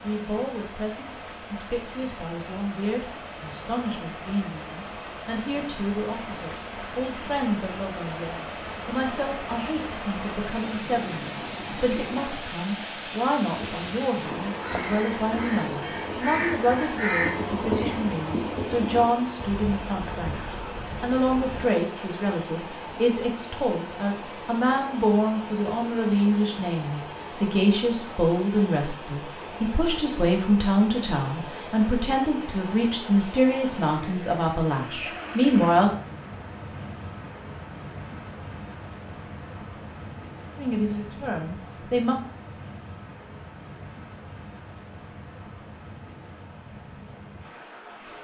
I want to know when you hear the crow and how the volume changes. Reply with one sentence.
The crow can be heard from 13.5 to 21.7 s, getting louder then quieter.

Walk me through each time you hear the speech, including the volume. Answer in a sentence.
You can hear the speech from 0.0 to 35.9 s, getting louder; and briefly from 40.5 to 42.2 s.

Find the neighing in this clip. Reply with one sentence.
The neighing can't be heard in this clip.